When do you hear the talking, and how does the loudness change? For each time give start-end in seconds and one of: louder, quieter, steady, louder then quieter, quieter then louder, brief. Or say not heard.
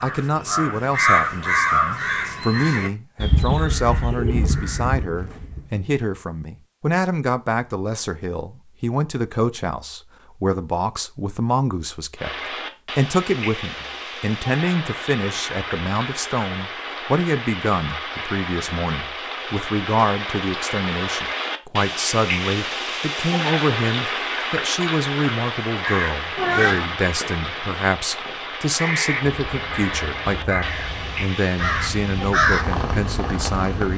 0.0-12.3 steady
12.9-33.9 steady.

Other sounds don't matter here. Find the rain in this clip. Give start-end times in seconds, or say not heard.
12.2-33.9.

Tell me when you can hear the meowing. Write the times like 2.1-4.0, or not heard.
26.4-26.9.